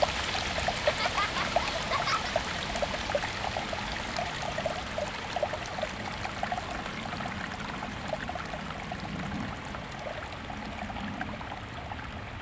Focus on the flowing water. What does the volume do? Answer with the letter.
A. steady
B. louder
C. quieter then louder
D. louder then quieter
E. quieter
E.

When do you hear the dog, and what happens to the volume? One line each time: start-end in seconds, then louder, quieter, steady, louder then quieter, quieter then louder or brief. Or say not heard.
not heard.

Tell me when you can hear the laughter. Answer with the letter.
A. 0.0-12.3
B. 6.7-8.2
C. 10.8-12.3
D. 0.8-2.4
D.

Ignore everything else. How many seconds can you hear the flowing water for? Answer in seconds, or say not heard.
12 s.